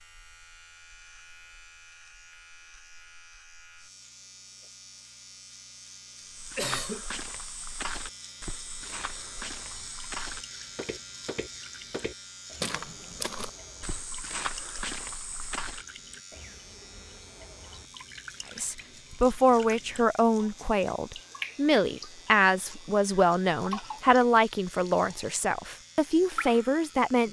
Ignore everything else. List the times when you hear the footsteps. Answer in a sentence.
The footsteps can be heard from 6.3 to 15.8 s.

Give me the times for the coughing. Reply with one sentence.
You can hear the coughing from 6.5 to 7.0 s.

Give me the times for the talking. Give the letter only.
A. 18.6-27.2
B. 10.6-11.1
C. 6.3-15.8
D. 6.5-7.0
A.